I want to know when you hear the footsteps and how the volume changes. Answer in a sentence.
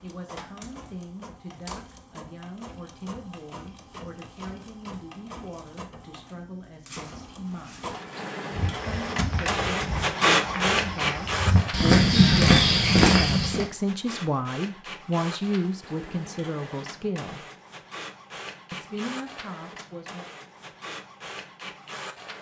You can hear the footsteps from 8.6 to 13.7 s, getting louder.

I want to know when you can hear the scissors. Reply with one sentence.
The scissors can't be heard in this clip.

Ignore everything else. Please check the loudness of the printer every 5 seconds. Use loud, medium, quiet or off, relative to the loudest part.
quiet, medium, loud, quiet, quiet.